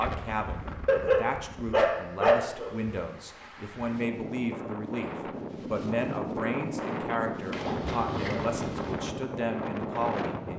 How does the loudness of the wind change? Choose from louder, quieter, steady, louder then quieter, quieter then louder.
louder.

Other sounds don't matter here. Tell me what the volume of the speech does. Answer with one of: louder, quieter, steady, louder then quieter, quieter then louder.
steady.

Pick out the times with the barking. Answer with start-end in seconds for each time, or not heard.
0.8-2.8, 7.5-9.0.